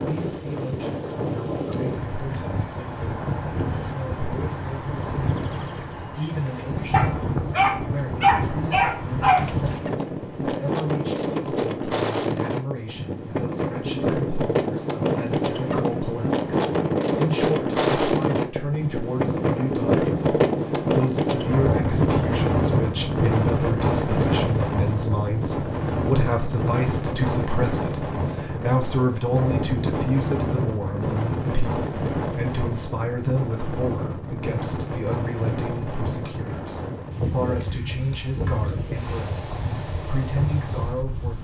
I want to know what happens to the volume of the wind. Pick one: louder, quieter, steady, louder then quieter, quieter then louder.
louder then quieter.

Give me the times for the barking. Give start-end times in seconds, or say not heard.
6.9-9.5.